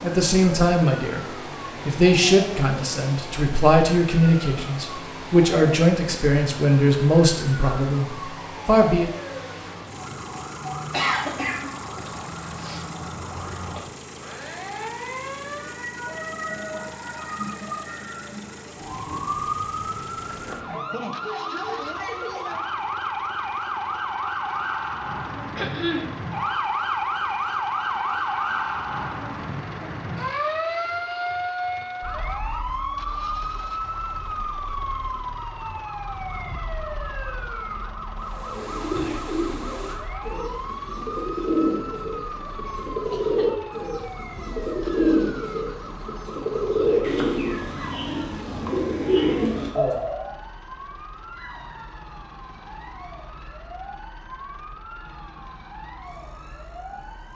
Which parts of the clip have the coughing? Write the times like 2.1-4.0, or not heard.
10.9-12.8, 25.6-26.1, 42.5-43.7.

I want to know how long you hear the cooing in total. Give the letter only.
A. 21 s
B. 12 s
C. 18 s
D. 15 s
B.